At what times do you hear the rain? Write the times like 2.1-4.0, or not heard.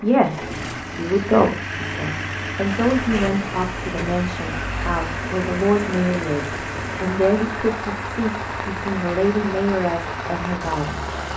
2.6-11.3.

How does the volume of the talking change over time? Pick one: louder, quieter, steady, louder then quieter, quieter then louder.
steady.